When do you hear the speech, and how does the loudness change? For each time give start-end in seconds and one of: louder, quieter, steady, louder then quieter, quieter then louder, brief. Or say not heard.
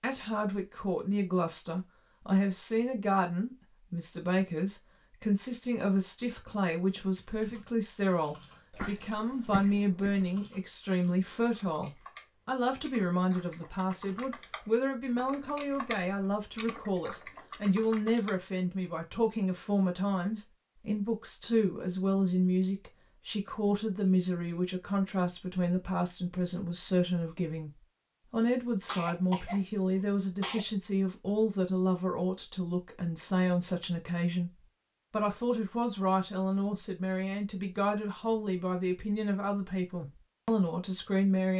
0.0-41.5 steady.